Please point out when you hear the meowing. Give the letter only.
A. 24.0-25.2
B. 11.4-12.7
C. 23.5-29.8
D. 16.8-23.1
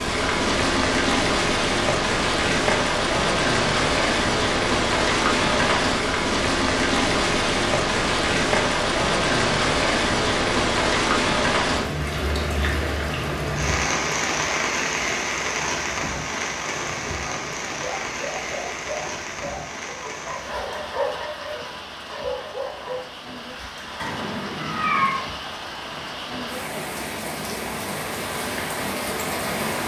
A.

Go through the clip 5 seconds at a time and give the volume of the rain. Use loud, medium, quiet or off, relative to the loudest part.
loud, loud, loud, medium, quiet, medium.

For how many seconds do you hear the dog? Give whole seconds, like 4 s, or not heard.
6 s.